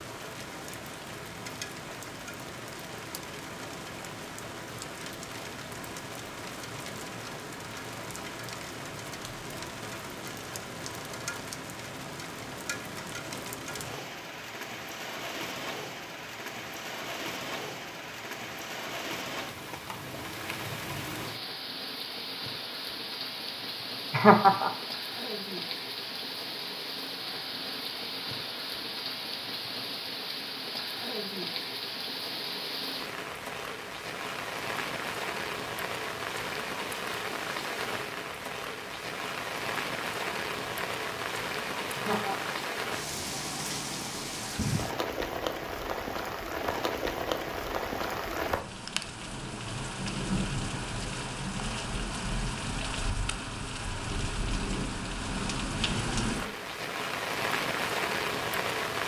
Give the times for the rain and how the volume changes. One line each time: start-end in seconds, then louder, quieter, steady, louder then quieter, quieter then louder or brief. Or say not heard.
0.0-59.0 louder.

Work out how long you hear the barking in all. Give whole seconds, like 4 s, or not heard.
not heard.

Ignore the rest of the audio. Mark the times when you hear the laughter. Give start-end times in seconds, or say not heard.
24.1-24.7, 42.0-42.5.